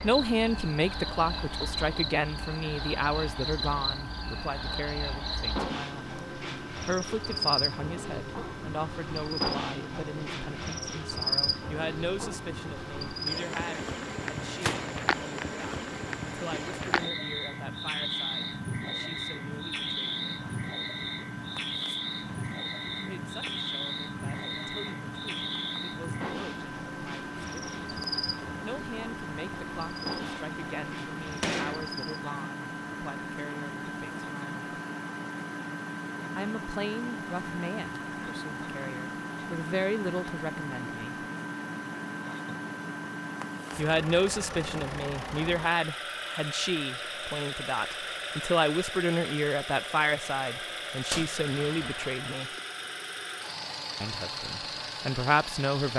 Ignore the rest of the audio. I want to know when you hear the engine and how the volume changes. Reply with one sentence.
You can hear the engine from 0.0 to 55.9 s, getting louder.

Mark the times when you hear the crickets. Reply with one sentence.
You can hear the crickets from 0.0 to 32.1 s.